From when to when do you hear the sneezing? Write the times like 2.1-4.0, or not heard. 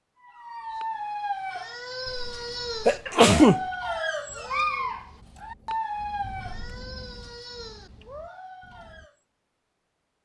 2.1-3.6.